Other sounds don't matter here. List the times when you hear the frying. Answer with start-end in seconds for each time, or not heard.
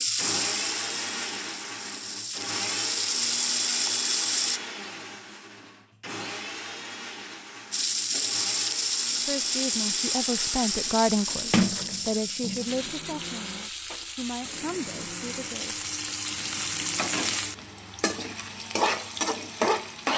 0.0-4.6, 7.7-20.1.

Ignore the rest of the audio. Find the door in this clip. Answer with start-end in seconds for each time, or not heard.
11.5-12.7.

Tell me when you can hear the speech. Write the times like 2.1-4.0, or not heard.
9.2-15.8.